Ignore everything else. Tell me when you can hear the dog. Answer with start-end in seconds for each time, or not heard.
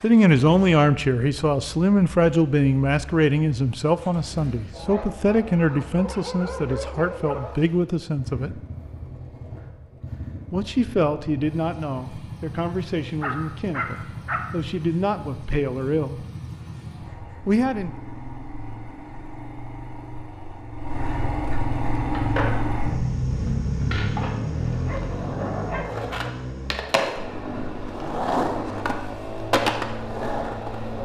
4.7-7.7, 13.2-14.4, 24.8-26.1.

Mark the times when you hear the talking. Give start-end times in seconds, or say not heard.
0.0-8.6, 10.5-16.2, 17.4-17.9.